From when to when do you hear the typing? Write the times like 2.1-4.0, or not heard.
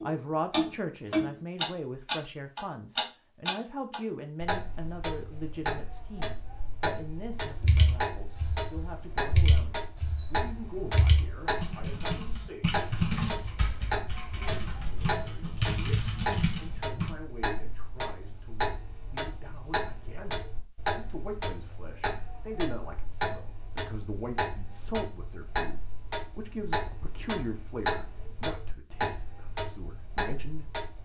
7.6-17.1.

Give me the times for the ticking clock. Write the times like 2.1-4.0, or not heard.
0.0-30.9.